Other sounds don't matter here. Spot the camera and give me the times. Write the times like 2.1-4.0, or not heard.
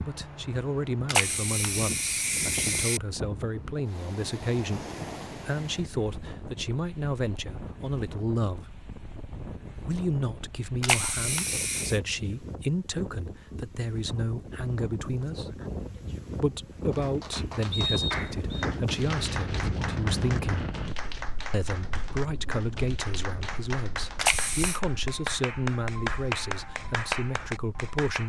1.1-3.0, 10.8-12.0, 24.2-24.8.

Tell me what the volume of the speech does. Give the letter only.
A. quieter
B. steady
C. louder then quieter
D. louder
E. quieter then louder
B.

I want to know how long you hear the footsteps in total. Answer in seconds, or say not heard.
not heard.